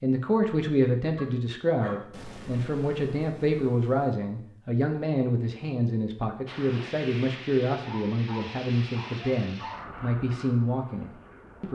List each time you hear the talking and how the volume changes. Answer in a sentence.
You can hear the talking from 0.0 to 11.7 s, at a steady volume.